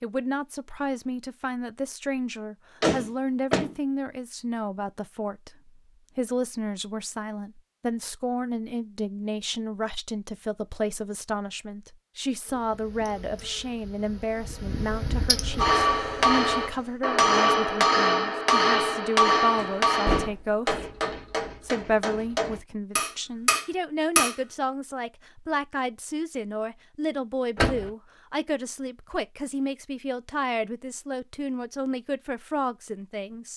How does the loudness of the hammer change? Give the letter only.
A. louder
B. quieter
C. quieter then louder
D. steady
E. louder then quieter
C.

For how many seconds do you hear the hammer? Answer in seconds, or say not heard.
9 s.